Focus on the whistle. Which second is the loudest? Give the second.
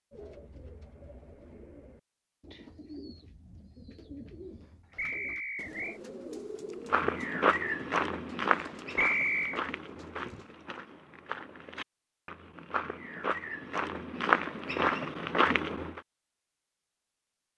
9 s.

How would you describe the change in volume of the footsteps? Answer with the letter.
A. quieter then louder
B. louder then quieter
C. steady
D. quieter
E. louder
A.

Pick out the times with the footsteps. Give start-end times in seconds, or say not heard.
6.9-16.0.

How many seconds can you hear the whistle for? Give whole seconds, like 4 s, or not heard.
2 s.